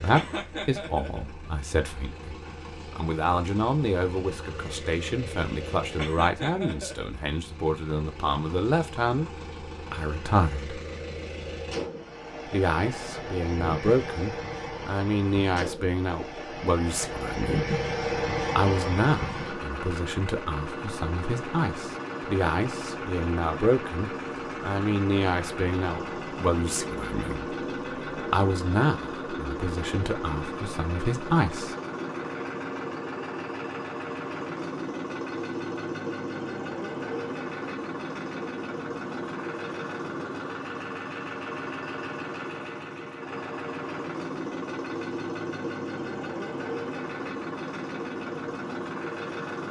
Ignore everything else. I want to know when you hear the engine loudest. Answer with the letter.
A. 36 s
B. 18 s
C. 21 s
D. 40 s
B.